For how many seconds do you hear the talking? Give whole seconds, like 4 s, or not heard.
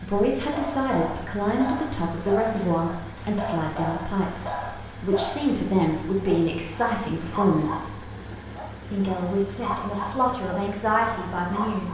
11 s.